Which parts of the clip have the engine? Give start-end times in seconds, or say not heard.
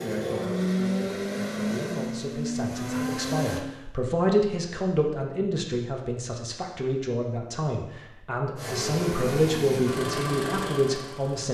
0.0-3.6, 8.6-11.4.